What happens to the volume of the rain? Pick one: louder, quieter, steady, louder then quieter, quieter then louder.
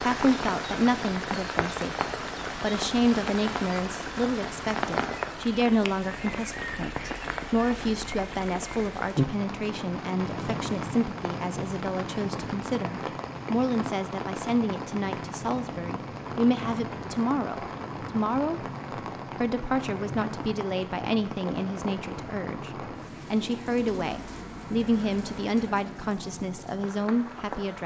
quieter.